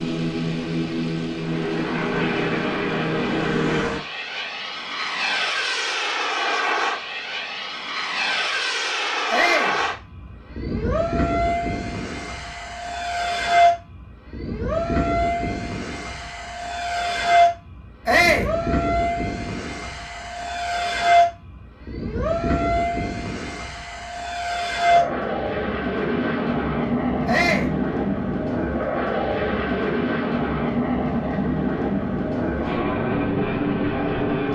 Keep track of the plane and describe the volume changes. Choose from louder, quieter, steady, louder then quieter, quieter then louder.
steady.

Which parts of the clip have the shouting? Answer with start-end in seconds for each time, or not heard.
9.3-9.8, 18.1-18.5, 27.2-27.7.